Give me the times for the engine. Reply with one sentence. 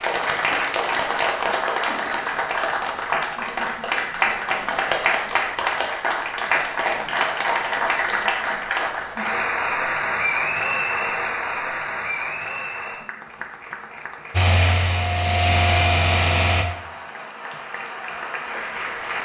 The engine can be heard from 14.3 to 16.6 s.